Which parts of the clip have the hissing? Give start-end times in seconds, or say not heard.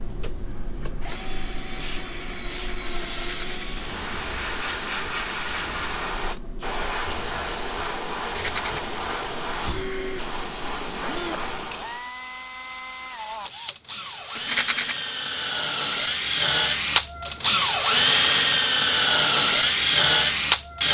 0.0-12.1.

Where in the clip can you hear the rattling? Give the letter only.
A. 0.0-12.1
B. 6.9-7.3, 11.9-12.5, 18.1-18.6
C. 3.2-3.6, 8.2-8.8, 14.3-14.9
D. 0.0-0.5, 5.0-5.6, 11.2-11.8
C.